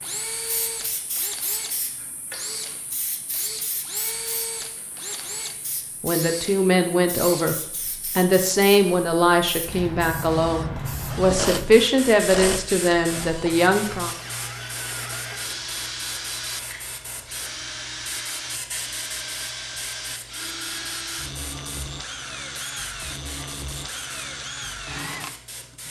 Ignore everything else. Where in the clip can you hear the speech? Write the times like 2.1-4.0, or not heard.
6.0-14.2.